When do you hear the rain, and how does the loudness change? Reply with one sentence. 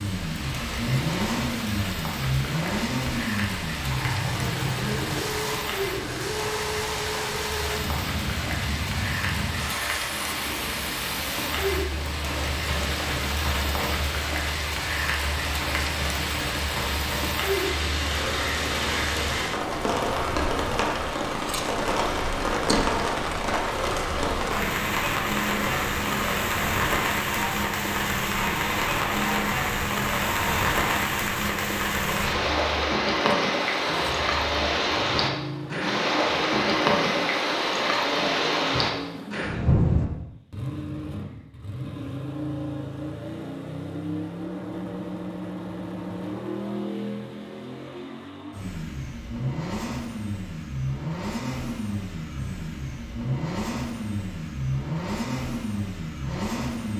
The rain can be heard from 0.0 to 40.1 s, getting louder.